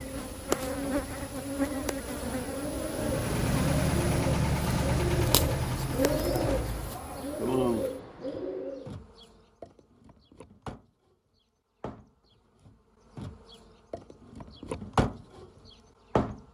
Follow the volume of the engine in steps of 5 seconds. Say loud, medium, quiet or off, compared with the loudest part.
loud, loud, off, off.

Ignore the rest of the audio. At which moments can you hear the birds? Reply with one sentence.
The birds can be heard from 0.0 to 8.9 s.